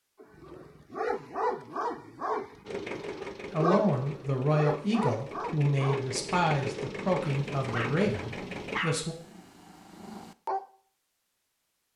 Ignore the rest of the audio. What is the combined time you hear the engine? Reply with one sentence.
You can hear the engine for 6 seconds altogether.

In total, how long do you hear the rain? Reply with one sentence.
You can't hear the rain here.